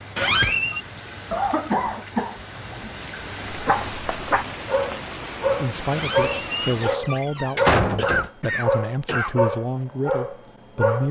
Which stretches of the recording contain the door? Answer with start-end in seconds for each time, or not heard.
0.1-0.8, 5.9-8.3.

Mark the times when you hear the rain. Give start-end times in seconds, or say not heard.
0.0-7.0.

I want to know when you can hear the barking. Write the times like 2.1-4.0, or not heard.
3.5-11.0.